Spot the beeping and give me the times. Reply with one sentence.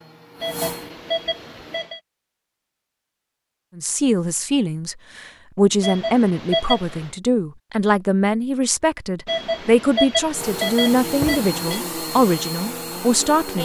You can hear the beeping from 0.4 to 2.0 s, from 5.8 to 7.1 s and from 9.2 to 11.8 s.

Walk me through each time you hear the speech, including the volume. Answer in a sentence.
You can hear the speech from 3.8 to 13.6 s, at a steady volume.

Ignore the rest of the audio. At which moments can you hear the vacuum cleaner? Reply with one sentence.
The vacuum cleaner can be heard from 0.0 to 1.9 s and from 10.3 to 13.6 s.